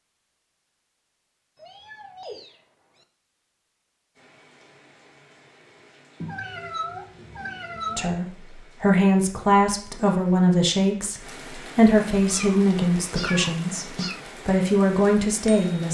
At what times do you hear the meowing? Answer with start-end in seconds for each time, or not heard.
1.6-3.0, 6.2-8.2, 12.2-14.2.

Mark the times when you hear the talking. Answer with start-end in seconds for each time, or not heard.
8.0-15.8.